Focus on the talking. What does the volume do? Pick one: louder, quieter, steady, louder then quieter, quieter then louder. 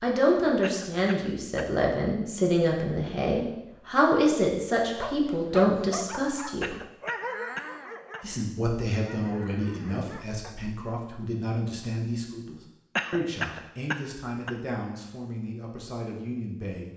quieter.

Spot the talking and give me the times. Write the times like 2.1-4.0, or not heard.
0.0-6.8, 8.2-16.9.